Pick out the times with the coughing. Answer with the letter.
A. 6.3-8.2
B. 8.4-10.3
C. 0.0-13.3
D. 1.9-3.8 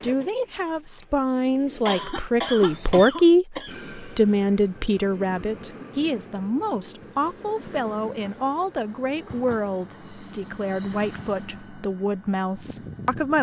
D.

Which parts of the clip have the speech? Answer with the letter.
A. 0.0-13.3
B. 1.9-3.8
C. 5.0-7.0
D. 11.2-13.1
A.